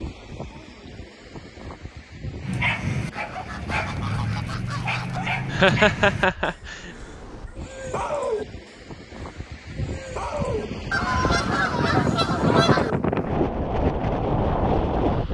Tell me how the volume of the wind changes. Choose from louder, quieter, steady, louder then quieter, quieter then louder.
louder.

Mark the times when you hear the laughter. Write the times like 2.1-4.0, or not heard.
5.5-6.9.